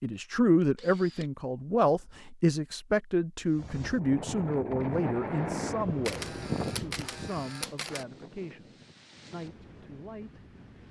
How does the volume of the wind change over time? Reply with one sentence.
The volume of the wind goes down.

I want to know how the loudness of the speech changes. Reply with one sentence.
The volume of the speech goes down.